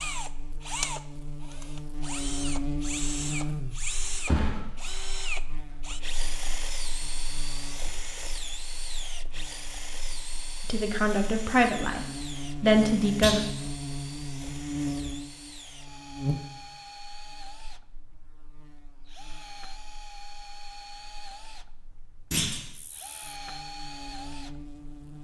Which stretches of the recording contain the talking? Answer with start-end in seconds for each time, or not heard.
10.7-13.4.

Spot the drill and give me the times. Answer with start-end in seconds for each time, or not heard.
0.0-24.9.